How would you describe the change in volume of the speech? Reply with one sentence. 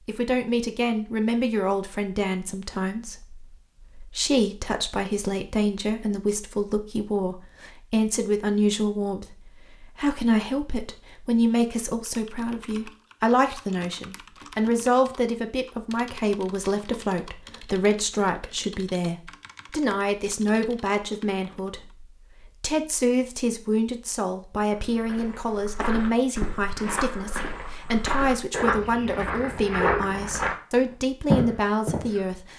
The volume of the speech stays about the same.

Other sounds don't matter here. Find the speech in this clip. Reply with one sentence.
You can hear the speech from 0.1 to 32.5 s.